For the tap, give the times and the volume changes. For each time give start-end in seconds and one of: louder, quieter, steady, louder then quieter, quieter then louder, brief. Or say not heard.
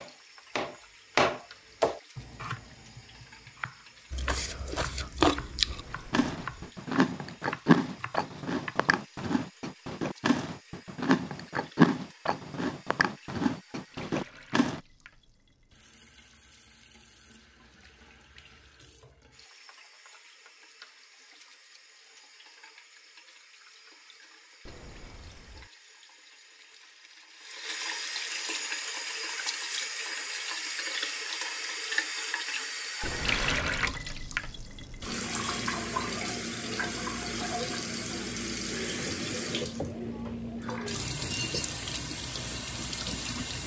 0.0-43.6 louder.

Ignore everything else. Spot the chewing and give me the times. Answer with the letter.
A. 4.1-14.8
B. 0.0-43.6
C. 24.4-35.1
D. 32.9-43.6
A.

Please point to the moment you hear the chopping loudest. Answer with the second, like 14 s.
1 s.